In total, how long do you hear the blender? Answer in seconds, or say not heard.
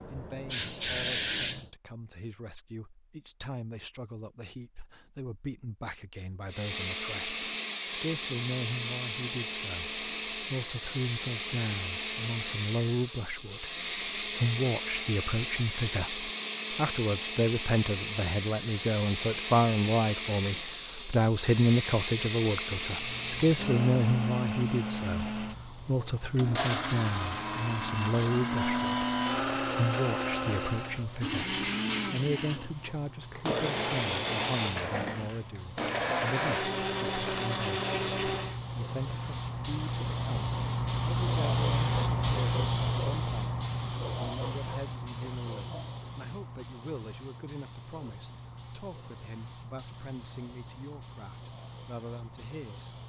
32 s.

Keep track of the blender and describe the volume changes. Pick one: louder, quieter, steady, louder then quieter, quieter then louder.
steady.